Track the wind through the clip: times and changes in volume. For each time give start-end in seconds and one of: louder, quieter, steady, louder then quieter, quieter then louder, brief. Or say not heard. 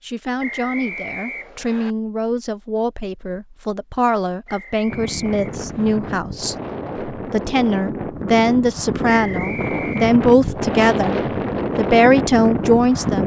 4.8-13.2 louder.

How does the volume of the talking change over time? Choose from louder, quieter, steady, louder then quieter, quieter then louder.
louder.